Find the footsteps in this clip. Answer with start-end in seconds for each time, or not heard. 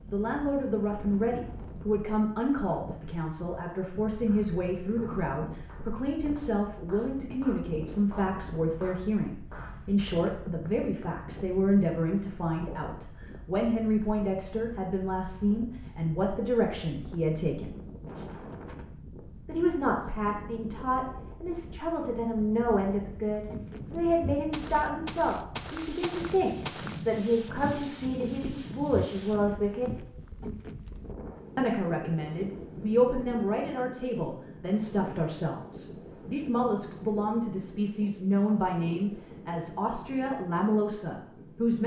23.2-30.9.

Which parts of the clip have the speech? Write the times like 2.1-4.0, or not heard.
0.1-17.8, 19.4-30.0, 31.6-41.8.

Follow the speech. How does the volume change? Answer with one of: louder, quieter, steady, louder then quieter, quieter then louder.
steady.